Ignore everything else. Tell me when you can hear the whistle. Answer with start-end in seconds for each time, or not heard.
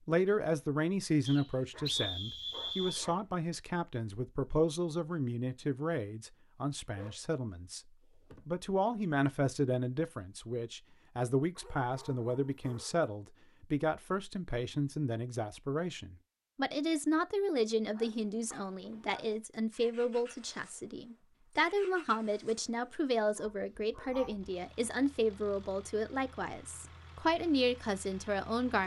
1.2-3.0.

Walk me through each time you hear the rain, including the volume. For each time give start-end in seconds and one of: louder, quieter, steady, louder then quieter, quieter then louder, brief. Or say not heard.
not heard.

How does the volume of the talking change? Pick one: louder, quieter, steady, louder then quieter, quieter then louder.
steady.